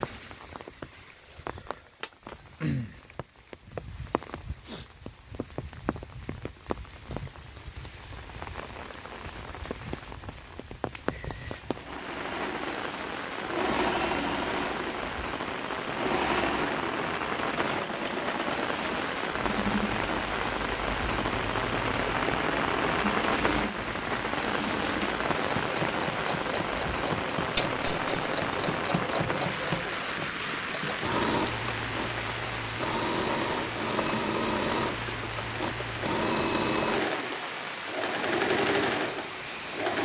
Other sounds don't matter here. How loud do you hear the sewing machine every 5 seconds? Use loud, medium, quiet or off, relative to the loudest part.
off, off, loud, loud, medium, medium, loud, loud.